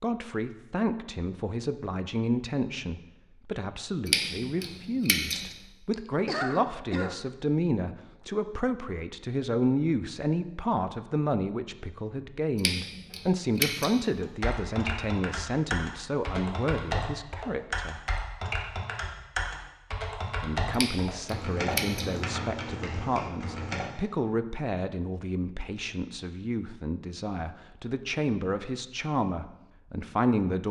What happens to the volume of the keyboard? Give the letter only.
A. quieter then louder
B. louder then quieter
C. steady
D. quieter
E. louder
C.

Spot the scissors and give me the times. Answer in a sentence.
The scissors can be heard from 4.0 to 5.5 s, from 12.6 to 13.9 s and from 20.7 to 22.1 s.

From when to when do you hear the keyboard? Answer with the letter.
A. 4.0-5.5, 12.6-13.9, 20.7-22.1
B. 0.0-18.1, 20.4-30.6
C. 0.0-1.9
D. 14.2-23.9
D.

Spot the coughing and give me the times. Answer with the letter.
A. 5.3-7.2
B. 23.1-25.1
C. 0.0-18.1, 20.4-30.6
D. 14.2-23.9
A.